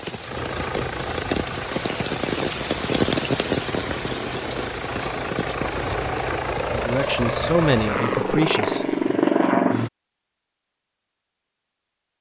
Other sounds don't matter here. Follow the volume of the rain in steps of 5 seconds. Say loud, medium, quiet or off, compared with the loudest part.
loud, medium, off.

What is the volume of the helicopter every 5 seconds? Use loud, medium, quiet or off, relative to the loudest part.
medium, loud, off.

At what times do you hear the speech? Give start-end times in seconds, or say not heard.
6.7-9.2.